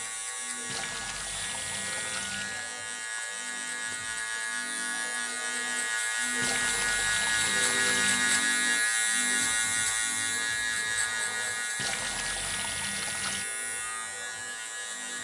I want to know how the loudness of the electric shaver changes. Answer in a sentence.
The volume of the electric shaver goes up, then down.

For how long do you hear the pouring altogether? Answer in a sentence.
The pouring can be heard for 6 seconds in total.